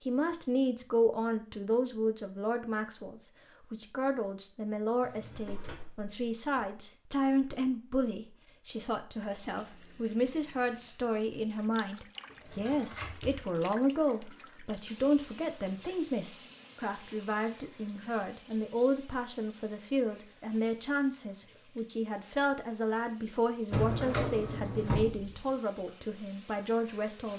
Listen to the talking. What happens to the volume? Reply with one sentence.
The loudness of the talking stays about the same.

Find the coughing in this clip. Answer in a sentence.
You can't hear the coughing here.